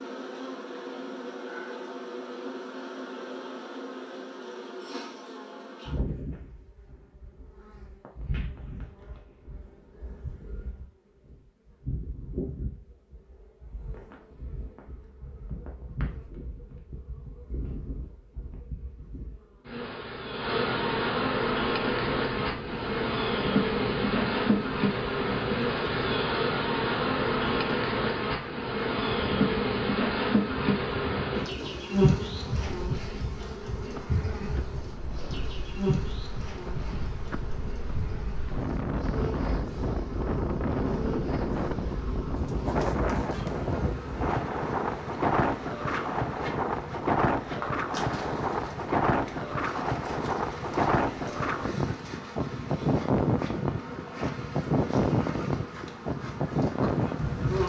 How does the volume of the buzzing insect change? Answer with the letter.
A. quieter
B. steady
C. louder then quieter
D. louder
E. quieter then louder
C.